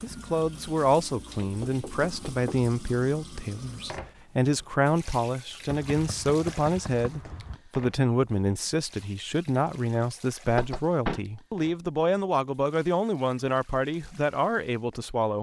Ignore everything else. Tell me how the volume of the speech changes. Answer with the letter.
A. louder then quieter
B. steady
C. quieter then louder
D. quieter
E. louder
B.